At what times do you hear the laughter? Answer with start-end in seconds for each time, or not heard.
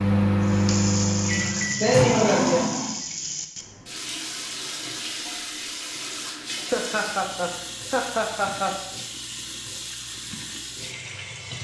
1.2-2.8, 6.7-8.8.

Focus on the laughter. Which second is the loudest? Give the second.
2 s.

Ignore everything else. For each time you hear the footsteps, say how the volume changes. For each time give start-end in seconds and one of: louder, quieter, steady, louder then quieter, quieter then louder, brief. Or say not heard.
not heard.